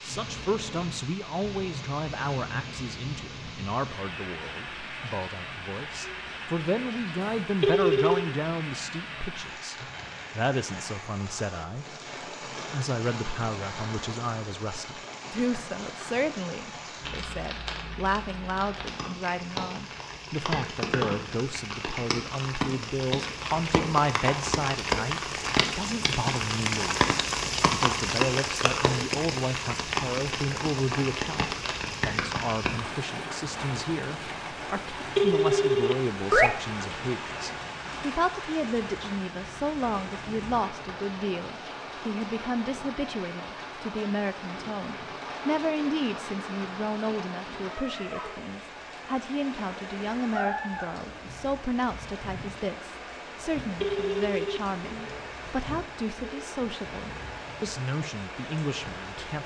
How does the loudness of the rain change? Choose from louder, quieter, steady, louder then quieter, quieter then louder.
louder then quieter.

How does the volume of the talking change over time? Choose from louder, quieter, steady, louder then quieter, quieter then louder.
steady.